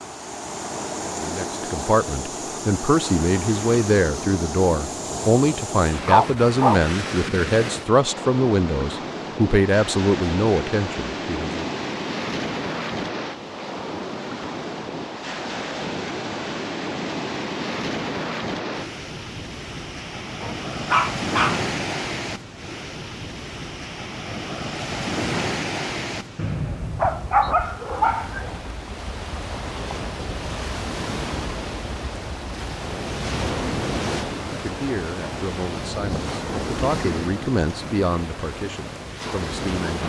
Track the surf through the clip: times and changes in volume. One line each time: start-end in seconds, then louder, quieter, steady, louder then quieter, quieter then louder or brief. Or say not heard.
0.0-40.0 steady.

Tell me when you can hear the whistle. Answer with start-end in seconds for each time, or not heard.
26.4-27.6.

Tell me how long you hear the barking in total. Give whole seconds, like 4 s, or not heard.
4 s.